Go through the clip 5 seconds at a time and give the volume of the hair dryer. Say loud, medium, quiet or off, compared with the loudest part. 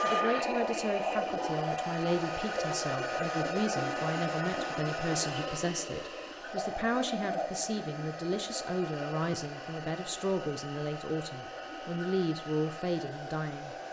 loud, medium, medium.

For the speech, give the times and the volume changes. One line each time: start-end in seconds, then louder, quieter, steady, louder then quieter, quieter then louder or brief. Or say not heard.
0.0-13.8 steady.